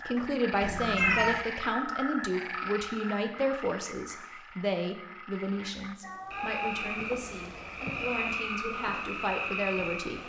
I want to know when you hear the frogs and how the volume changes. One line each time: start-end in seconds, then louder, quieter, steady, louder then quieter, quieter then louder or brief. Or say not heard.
0.0-10.2 quieter then louder.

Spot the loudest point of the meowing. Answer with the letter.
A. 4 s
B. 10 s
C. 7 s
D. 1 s
D.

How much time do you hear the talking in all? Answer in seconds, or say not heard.
10 s.